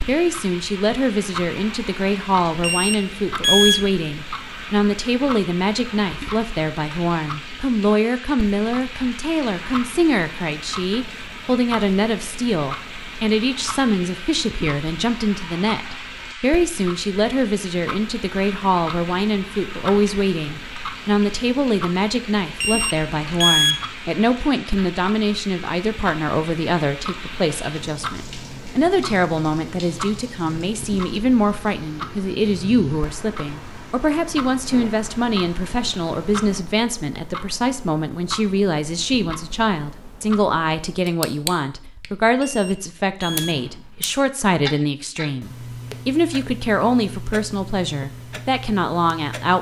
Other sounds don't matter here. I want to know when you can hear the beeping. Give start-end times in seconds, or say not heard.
2.6-3.9, 22.6-23.9, 42.4-43.7.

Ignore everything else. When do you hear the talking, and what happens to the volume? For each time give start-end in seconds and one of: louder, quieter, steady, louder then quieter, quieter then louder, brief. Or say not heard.
0.0-49.5 steady.